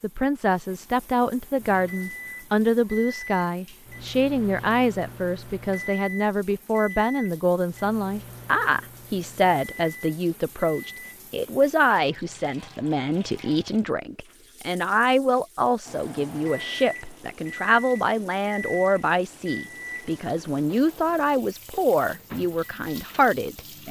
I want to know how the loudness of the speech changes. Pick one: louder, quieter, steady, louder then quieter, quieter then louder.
steady.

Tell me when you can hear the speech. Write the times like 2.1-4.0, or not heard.
0.0-23.8.